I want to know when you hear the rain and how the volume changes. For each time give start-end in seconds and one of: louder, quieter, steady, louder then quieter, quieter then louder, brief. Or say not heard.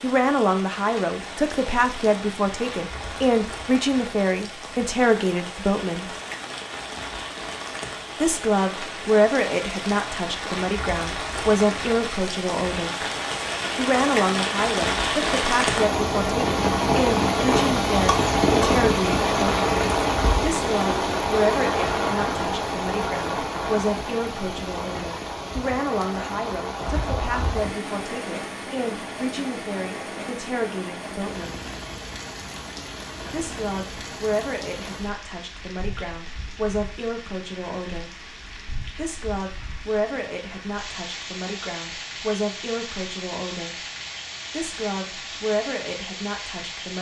0.0-46.9 louder then quieter.